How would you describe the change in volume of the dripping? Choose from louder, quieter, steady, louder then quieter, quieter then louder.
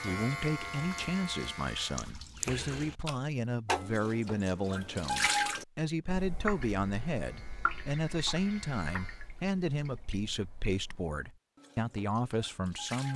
louder then quieter.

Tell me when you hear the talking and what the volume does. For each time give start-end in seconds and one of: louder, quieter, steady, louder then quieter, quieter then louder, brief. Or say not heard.
0.0-13.1 steady.